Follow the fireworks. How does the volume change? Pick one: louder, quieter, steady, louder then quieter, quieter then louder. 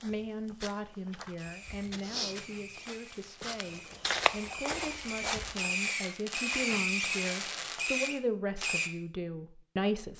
louder.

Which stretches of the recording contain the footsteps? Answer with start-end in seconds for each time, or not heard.
0.0-5.9.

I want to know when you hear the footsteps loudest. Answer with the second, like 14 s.
4 s.